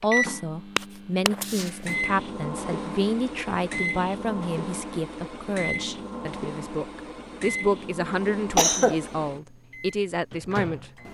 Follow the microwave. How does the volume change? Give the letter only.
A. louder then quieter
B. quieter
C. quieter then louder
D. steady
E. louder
B.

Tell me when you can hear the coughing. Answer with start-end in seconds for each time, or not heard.
8.6-9.0.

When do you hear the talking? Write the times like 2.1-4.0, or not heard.
0.0-10.9.